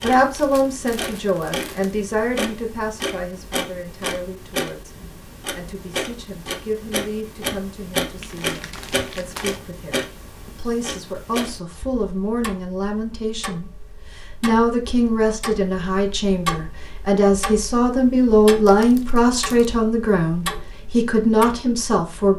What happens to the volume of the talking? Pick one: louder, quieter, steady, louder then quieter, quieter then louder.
quieter then louder.